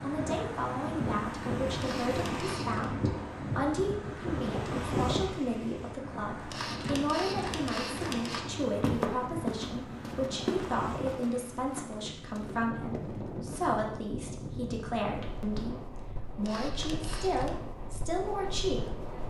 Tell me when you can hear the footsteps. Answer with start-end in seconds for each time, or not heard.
8.6-13.7.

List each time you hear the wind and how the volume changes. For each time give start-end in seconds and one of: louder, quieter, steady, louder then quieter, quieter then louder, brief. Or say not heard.
0.0-19.2 quieter.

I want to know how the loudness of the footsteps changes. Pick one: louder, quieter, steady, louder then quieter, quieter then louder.
quieter.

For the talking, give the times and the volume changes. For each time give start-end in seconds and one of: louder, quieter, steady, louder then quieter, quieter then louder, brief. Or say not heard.
0.0-19.1 steady.